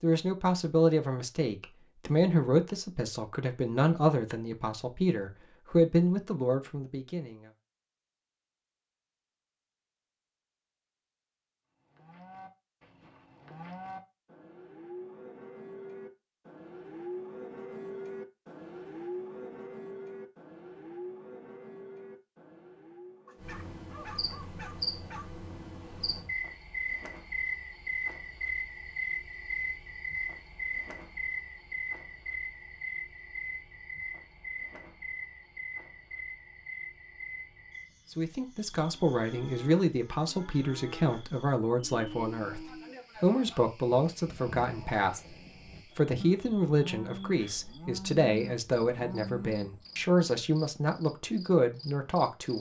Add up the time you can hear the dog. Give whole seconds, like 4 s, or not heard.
2 s.